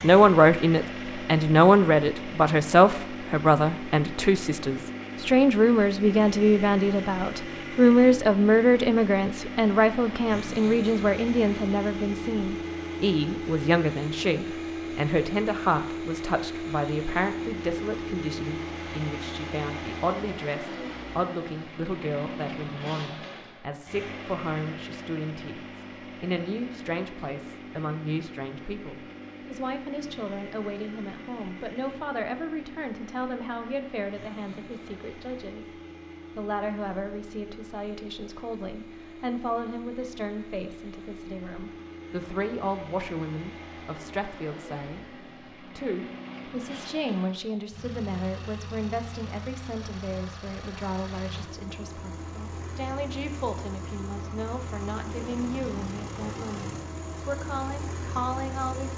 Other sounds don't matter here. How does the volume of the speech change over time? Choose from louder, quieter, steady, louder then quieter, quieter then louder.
quieter.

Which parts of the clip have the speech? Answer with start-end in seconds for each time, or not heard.
0.0-58.9.